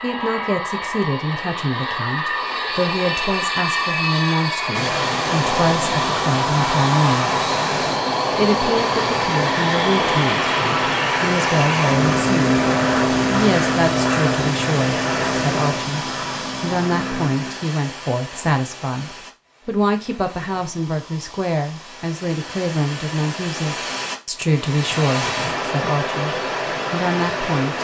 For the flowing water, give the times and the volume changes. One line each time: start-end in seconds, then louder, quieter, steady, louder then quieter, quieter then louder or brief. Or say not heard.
4.7-27.7 quieter then louder.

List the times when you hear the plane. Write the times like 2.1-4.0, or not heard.
0.0-17.6.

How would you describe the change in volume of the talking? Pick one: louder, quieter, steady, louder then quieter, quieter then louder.
steady.